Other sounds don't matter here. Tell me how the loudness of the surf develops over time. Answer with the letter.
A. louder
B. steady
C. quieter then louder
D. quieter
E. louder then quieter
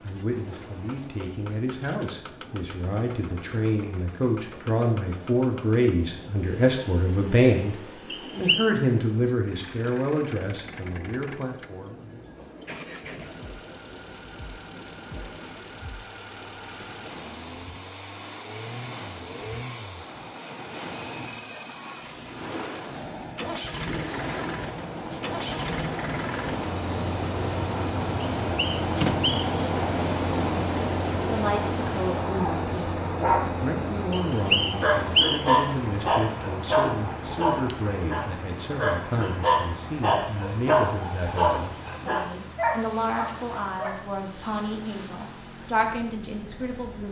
E.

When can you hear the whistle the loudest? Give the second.
35 s.